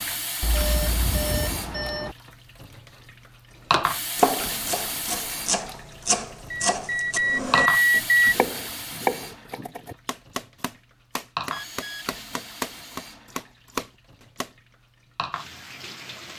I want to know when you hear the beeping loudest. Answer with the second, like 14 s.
8 s.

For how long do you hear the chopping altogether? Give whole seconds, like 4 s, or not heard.
11 s.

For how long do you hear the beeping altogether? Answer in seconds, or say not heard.
4 s.